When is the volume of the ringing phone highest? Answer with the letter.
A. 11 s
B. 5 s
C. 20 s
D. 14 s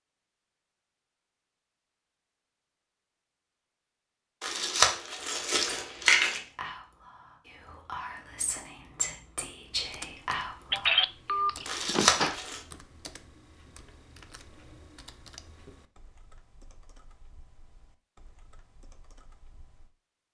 A.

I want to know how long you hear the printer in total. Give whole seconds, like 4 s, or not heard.
not heard.